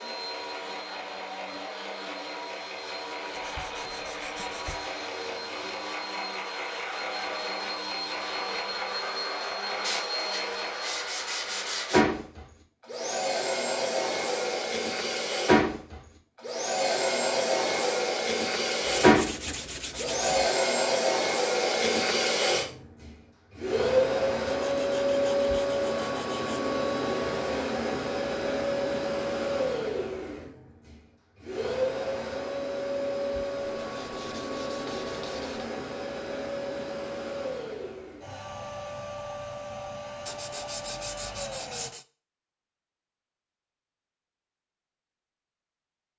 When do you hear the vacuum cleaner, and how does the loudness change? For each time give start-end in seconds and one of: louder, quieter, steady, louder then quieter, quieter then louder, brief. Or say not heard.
0.0-41.9 louder then quieter.